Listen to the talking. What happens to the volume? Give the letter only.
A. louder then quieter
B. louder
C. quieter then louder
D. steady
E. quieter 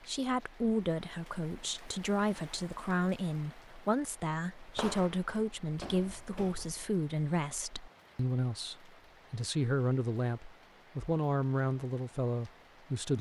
D.